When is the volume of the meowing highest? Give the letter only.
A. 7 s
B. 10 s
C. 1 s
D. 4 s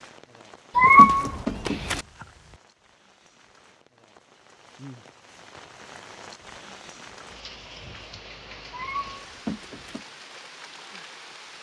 C.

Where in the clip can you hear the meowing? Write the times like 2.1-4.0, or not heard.
0.8-2.0, 8.7-10.0.